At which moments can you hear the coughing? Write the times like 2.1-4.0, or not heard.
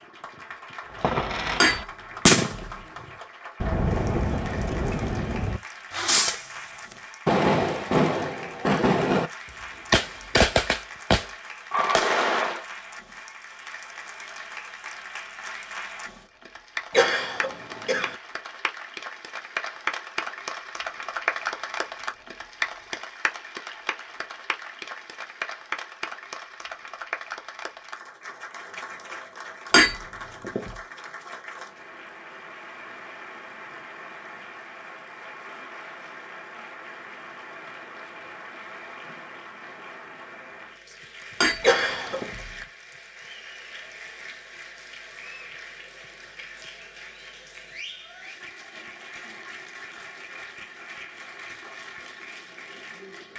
16.9-18.1, 41.6-42.3.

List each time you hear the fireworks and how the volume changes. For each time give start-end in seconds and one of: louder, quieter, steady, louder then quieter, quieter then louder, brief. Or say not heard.
0.9-6.5 louder then quieter
7.2-12.7 steady.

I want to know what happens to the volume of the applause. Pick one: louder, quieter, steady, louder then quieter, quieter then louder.
louder then quieter.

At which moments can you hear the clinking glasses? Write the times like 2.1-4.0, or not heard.
1.6-2.9, 29.7-30.8, 41.4-42.6.